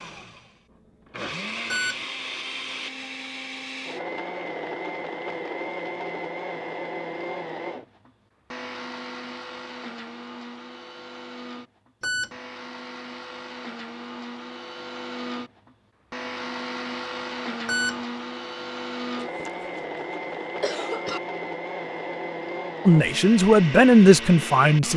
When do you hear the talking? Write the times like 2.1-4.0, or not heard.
22.9-24.9.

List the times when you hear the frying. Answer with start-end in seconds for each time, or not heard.
not heard.